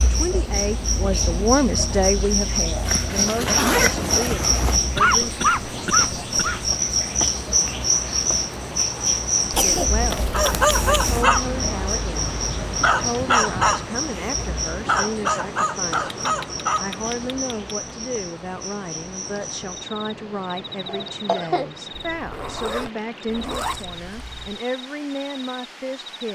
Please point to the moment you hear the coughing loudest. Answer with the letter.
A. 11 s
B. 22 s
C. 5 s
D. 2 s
C.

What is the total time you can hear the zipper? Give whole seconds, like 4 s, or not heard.
6 s.